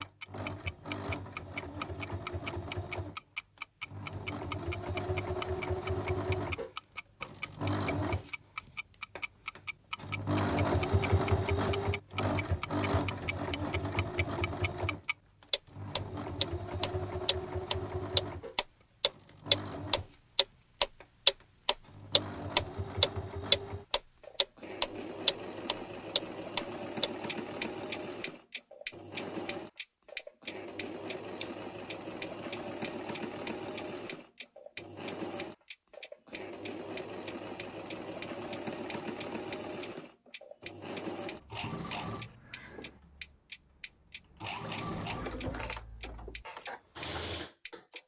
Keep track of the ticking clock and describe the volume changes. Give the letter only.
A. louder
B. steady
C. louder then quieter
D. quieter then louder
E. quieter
C.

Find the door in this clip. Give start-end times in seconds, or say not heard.
42.1-43.0.